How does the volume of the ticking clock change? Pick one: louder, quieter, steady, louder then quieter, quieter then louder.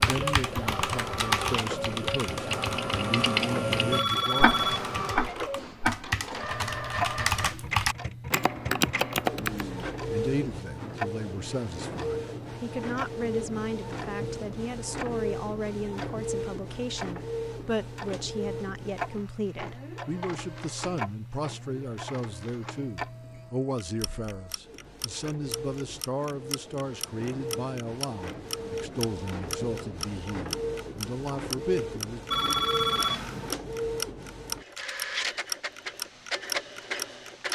quieter then louder.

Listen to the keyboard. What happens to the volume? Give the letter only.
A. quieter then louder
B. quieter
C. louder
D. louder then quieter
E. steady
A.